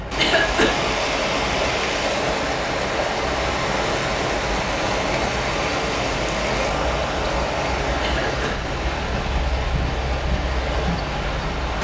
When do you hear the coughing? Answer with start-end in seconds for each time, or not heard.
0.1-0.8, 8.0-8.6.